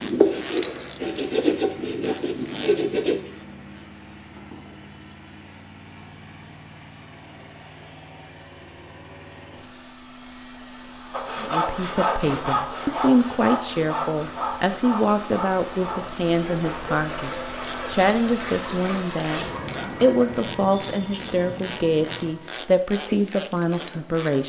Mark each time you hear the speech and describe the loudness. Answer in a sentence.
The speech can be heard from 11.4 to 24.4 s, at a steady volume.